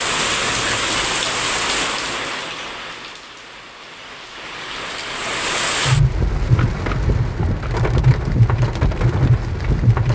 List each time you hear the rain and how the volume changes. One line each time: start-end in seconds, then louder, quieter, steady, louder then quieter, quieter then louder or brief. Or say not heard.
0.0-10.0 quieter then louder.